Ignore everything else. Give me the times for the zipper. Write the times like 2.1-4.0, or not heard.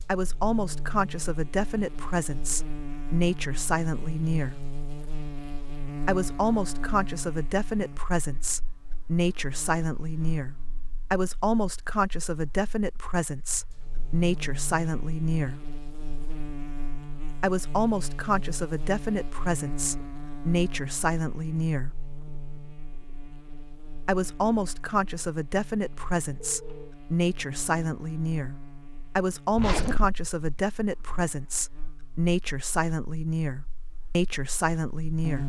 29.5-30.6.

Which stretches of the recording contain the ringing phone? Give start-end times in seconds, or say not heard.
26.2-26.9.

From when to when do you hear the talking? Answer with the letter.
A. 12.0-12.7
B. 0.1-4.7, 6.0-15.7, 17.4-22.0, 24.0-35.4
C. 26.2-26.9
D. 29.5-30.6
B.